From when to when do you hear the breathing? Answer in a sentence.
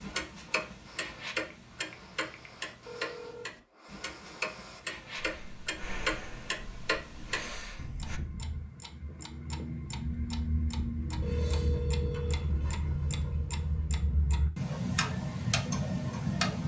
You can hear the breathing from 0.8 to 8.2 s.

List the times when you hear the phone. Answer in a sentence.
You can hear the phone from 1.5 to 3.5 s and from 11.2 to 13.9 s.